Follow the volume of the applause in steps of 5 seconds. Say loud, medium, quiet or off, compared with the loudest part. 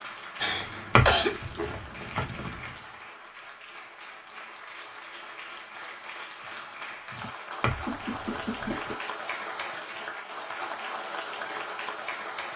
medium, loud, loud.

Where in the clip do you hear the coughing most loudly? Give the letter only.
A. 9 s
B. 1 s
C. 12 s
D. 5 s
B.